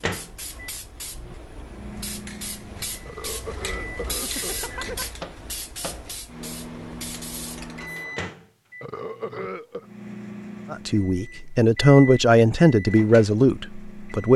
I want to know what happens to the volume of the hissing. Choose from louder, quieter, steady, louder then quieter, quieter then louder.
louder then quieter.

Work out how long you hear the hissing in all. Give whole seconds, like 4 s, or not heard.
8 s.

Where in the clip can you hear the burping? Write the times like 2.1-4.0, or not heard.
3.0-5.0, 8.8-9.8.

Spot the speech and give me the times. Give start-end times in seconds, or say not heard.
10.7-14.3.